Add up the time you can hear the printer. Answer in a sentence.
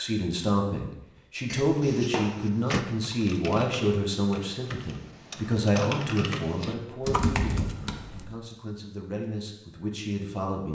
The printer can't be heard in this clip.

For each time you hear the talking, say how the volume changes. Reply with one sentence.
The talking can be heard from 0.0 to 10.6 s, getting quieter.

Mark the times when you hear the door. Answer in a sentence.
The door can be heard from 1.5 to 2.9 s and from 7.0 to 7.5 s.